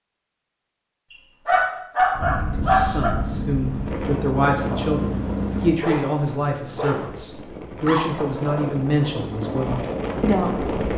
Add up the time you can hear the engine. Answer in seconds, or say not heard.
3 s.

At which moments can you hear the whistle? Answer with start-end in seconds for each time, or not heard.
not heard.